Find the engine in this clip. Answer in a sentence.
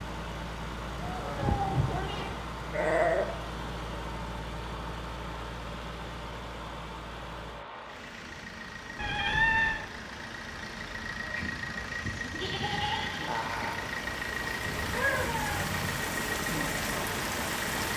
You can hear the engine from 0.0 to 17.9 s.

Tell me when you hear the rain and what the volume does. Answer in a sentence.
You can hear the rain from 0.0 to 17.9 s, getting louder.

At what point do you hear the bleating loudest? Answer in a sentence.
The volume of the bleating peaks at 3 seconds.